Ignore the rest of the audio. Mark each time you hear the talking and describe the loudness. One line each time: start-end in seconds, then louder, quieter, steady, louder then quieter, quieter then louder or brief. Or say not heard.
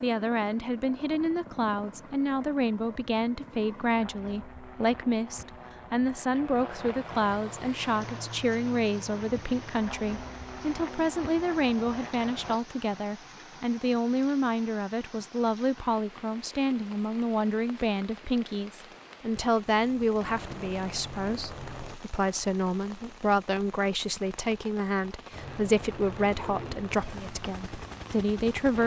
0.0-28.8 steady.